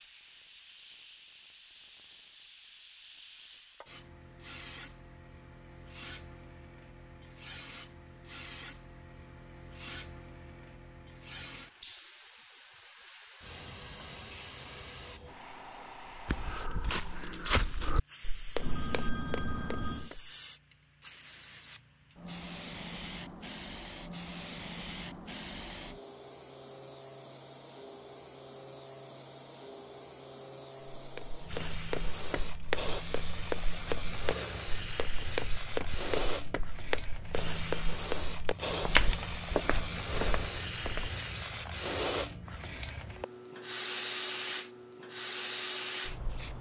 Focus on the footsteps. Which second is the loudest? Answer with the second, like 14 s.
39 s.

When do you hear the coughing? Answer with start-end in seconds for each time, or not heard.
not heard.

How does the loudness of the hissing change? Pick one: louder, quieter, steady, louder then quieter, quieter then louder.
louder.